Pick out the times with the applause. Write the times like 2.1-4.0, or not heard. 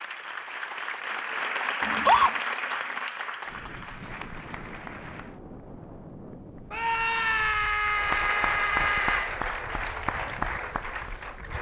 0.0-5.4, 7.8-11.5.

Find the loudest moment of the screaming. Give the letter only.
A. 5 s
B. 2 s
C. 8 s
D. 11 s
B.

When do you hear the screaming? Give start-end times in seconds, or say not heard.
1.8-2.3, 6.7-9.3.